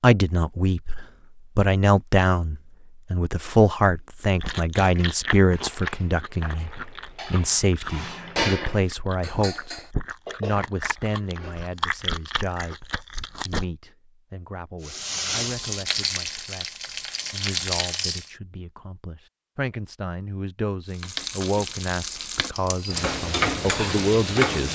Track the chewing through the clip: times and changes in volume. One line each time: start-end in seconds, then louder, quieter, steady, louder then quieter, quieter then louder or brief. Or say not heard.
4.4-13.7 quieter then louder.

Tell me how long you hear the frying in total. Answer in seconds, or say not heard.
7 s.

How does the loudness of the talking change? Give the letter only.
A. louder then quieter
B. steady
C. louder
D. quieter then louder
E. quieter
D.